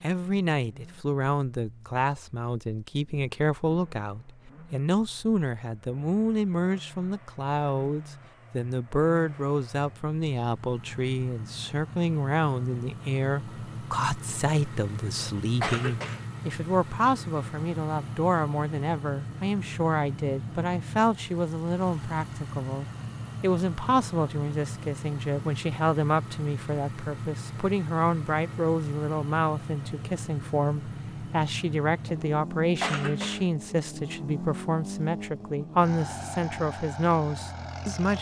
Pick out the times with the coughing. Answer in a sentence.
You can hear the coughing from 15.6 to 16.2 s and from 32.8 to 33.5 s.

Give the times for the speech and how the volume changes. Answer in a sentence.
You can hear the speech from 0.0 to 38.1 s, at a steady volume.